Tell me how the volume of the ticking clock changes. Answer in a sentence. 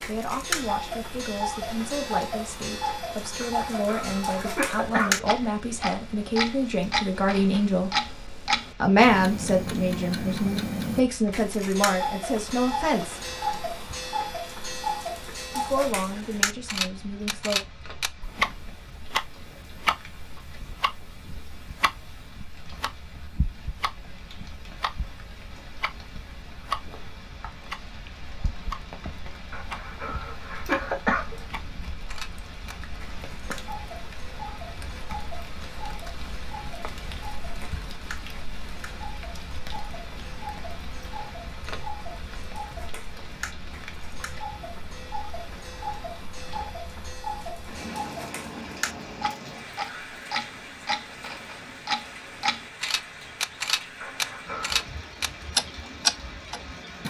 The loudness of the ticking clock goes down, then up.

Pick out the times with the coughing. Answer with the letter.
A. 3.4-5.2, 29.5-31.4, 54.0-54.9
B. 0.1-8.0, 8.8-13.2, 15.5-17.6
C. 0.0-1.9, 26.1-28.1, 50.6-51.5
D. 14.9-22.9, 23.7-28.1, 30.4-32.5
A.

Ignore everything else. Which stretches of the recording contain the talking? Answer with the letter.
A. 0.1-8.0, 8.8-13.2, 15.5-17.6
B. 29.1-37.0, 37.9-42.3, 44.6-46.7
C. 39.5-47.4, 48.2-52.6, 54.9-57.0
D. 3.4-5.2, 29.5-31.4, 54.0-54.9
A.